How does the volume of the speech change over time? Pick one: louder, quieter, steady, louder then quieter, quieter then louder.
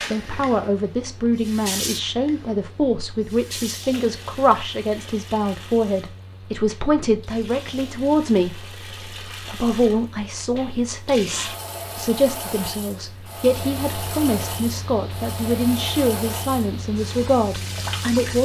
steady.